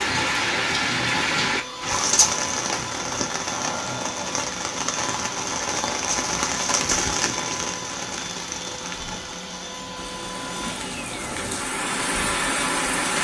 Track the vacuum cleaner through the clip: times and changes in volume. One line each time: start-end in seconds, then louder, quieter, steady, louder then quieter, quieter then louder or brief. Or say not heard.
0.0-12.9 steady.